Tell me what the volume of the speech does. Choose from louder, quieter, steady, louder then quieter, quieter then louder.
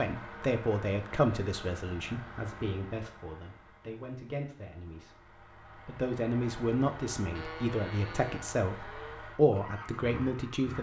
quieter then louder.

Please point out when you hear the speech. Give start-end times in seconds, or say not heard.
0.0-5.2, 5.8-10.7.